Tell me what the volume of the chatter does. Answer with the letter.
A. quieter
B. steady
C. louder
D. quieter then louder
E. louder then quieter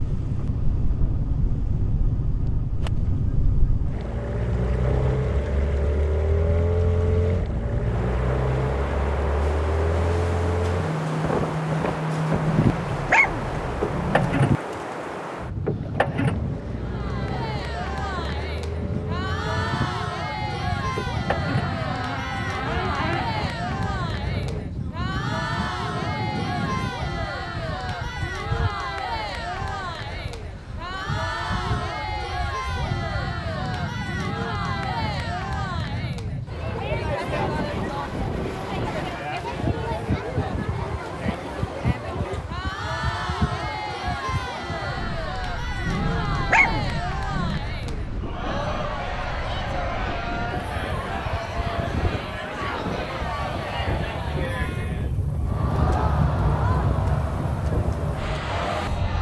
B.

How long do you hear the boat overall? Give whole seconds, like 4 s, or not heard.
31 s.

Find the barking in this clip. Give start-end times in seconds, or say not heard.
12.4-14.4, 45.9-47.6.